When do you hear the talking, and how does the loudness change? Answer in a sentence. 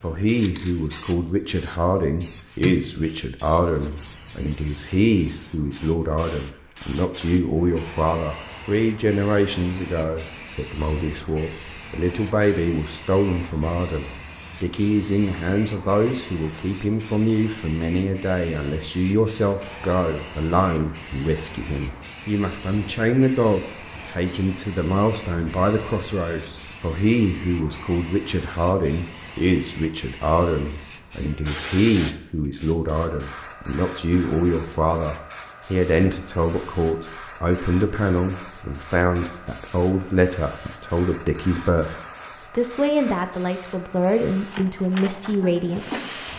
The talking can be heard from 0.0 to 46.0 s, at a steady volume.